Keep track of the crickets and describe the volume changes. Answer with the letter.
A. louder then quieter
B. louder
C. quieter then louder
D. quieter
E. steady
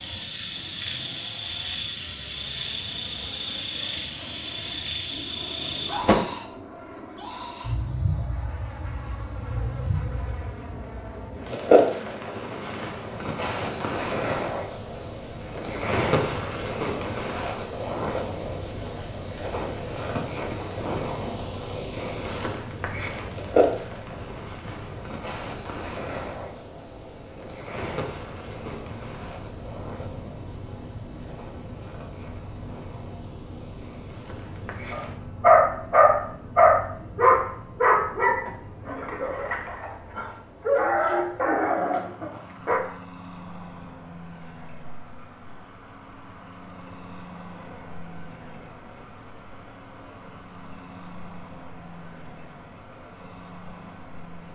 D.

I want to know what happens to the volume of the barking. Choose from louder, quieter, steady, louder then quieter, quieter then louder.
quieter.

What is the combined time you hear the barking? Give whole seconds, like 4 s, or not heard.
8 s.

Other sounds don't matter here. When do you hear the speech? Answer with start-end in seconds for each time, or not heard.
not heard.